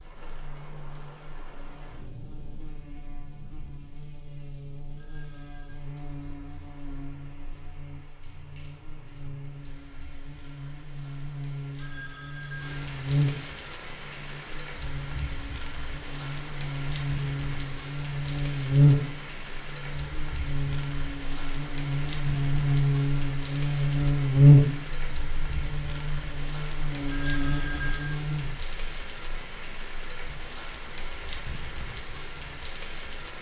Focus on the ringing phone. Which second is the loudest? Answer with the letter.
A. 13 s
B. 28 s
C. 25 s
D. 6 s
B.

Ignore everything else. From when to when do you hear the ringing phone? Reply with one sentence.
The ringing phone can be heard from 5.0 to 5.8 s, from 11.8 to 12.8 s and from 27.1 to 28.2 s.